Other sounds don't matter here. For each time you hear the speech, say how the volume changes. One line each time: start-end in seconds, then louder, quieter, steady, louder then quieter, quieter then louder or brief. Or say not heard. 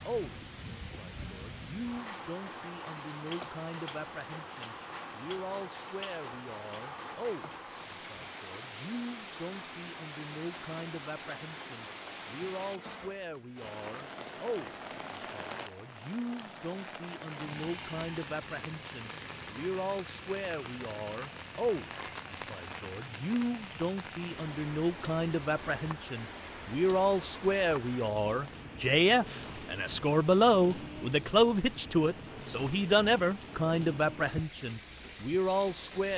0.0-36.1 louder.